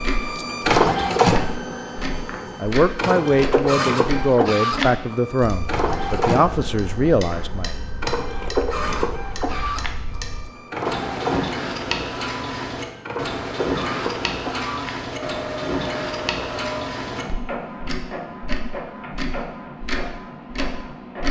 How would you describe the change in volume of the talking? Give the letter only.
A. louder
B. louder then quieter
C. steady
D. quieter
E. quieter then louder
C.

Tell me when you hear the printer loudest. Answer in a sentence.
The volume of the printer peaks at 1 second.